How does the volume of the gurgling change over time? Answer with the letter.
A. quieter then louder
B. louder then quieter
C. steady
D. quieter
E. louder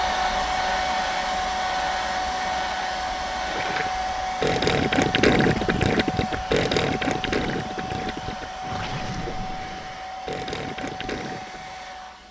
D.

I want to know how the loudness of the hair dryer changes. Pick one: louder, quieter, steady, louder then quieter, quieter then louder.
quieter.